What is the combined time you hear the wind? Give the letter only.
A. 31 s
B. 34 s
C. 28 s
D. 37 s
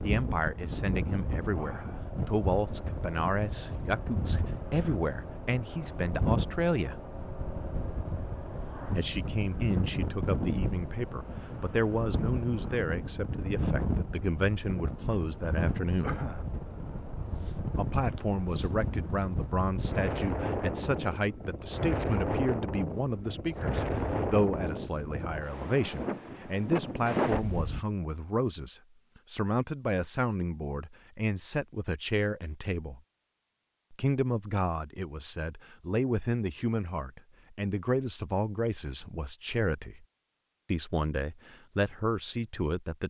C.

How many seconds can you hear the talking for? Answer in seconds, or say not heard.
38 s.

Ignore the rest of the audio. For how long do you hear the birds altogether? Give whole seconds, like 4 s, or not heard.
not heard.